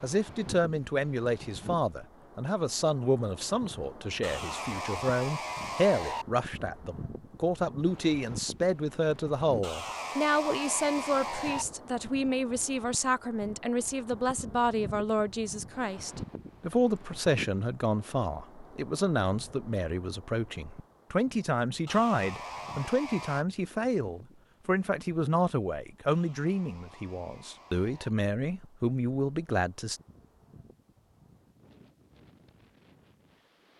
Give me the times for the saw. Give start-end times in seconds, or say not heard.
4.2-6.2, 9.6-11.7, 21.9-23.4, 26.1-28.1.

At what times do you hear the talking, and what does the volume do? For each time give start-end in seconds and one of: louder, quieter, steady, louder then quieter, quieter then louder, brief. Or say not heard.
0.0-30.0 steady.